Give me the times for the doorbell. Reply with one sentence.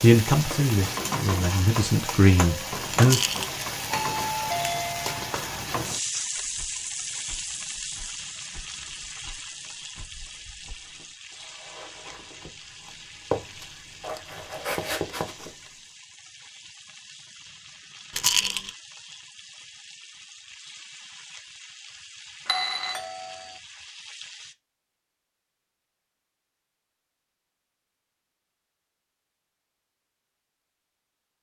The doorbell can be heard from 3.9 to 5.2 s and from 22.4 to 23.6 s.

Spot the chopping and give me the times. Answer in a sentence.
You can't hear the chopping here.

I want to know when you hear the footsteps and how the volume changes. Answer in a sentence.
The footsteps can be heard from 6.3 to 15.6 s, getting louder.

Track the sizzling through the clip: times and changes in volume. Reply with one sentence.
You can hear the sizzling from 0.0 to 24.6 s, getting quieter.